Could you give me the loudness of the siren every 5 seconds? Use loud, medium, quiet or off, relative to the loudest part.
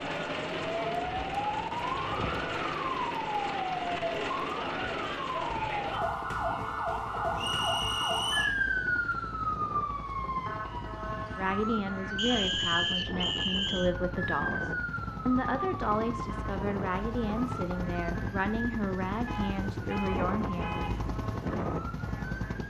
loud, loud, medium, medium, quiet.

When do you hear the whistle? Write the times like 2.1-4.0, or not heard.
7.3-8.6, 12.2-13.9.